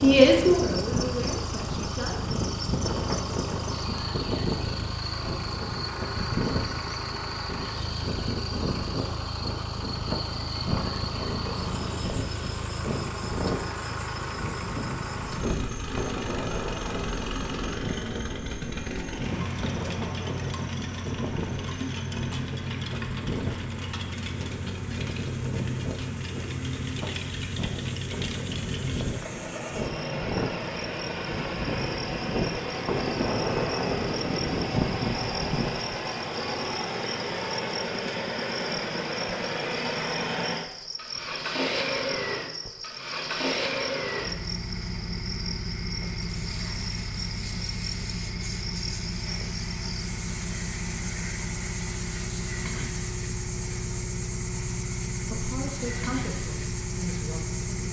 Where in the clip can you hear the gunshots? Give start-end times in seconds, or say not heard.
not heard.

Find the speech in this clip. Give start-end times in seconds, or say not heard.
0.0-2.4, 55.2-57.8.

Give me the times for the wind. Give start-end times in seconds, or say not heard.
0.0-35.7.